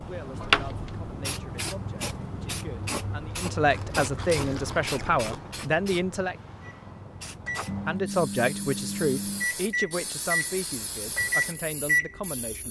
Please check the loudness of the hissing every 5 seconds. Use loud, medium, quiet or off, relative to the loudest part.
loud, medium, medium.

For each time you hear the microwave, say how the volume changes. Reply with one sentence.
You can hear the microwave from 6.6 to 12.6 s, getting louder.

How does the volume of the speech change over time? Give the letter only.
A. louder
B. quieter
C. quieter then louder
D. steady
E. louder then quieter
E.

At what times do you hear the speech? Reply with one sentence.
The speech can be heard from 0.0 to 6.3 s and from 7.8 to 12.6 s.